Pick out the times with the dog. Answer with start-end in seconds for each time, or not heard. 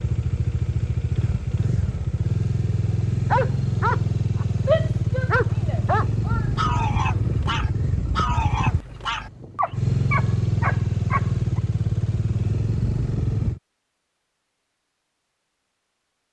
3.3-11.6.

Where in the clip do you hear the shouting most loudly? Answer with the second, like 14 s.
5 s.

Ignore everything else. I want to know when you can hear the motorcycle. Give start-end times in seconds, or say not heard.
0.0-13.6.